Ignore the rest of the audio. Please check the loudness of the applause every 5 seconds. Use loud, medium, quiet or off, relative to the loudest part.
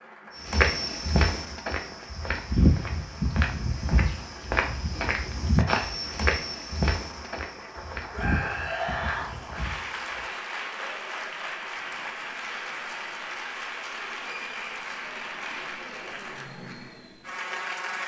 quiet, medium, loud, loud.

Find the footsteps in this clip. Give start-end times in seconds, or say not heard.
0.4-10.3.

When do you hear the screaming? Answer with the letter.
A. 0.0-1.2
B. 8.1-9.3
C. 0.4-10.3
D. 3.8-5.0
B.